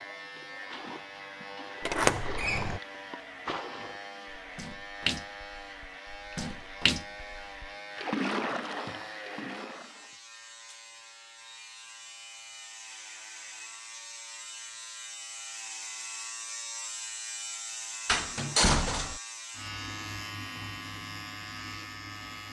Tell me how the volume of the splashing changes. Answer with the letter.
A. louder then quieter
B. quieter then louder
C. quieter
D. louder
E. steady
D.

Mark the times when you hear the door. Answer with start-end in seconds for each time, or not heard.
1.9-2.8, 18.1-19.2.